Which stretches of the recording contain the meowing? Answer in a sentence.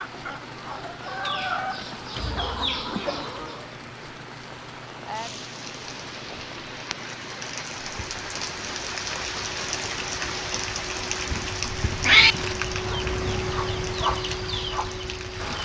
The meowing can be heard from 11.3 to 12.3 s.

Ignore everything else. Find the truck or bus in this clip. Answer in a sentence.
You can hear the truck or bus from 0.0 to 15.6 s.